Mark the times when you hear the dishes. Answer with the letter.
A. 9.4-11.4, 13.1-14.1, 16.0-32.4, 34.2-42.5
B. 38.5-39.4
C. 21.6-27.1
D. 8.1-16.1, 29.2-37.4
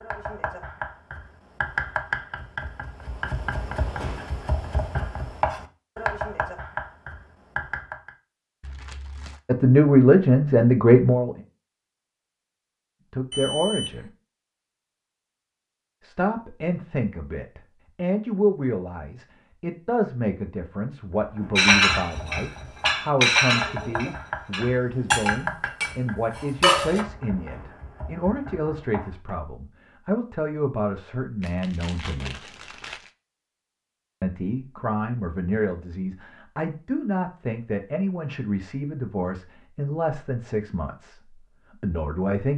C.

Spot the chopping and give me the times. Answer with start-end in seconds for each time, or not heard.
0.0-8.1, 21.1-29.4.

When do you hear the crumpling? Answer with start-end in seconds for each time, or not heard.
8.6-9.4, 31.4-33.1.